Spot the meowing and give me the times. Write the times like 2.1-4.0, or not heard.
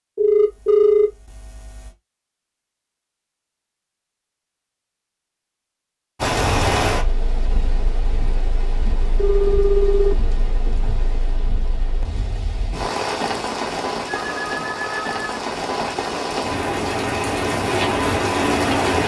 not heard.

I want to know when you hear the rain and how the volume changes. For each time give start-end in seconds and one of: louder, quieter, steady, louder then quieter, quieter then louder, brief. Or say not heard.
6.2-19.0 quieter then louder.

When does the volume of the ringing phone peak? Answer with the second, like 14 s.
1 s.